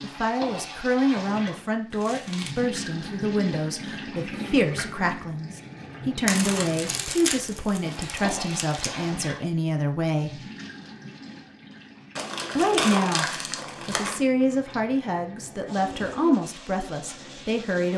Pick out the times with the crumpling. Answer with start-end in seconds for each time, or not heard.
1.9-2.5, 6.2-8.9, 12.2-14.2.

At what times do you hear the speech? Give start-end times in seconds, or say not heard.
0.0-10.4, 12.6-17.9.